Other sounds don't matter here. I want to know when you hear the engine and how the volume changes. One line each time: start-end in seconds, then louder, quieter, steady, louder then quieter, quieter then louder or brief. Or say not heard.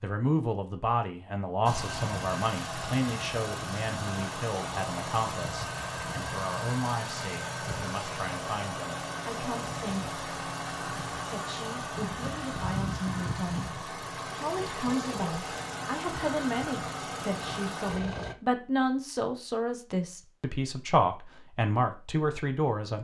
1.6-18.4 steady.